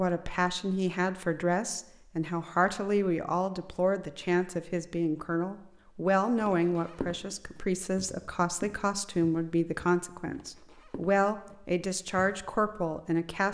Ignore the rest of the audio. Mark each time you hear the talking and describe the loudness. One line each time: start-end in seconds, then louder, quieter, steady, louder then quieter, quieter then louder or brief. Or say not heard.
0.0-13.4 steady.